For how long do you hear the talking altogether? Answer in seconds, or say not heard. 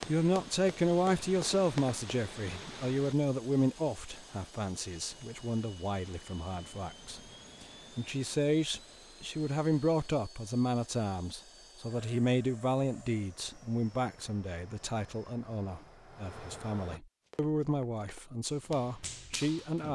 20 s.